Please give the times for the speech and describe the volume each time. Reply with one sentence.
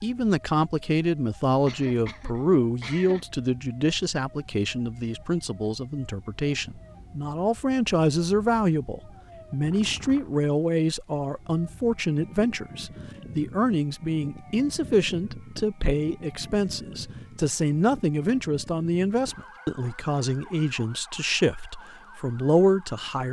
You can hear the speech from 0.0 to 23.2 s, at a steady volume.